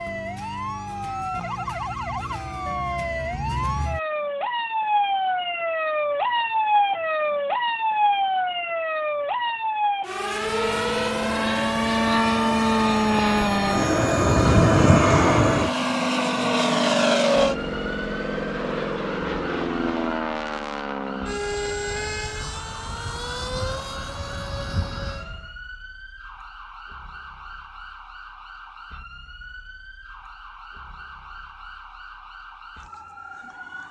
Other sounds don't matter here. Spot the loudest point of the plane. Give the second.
15 s.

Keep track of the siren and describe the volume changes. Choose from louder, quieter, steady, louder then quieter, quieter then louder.
quieter.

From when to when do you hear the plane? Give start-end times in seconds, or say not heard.
10.1-25.6.